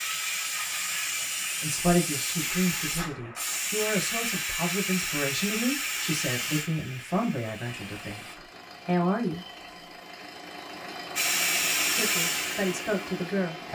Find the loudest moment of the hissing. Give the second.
12 s.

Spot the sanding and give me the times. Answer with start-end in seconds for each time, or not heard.
not heard.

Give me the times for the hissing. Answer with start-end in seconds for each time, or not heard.
0.0-8.3, 11.2-13.7.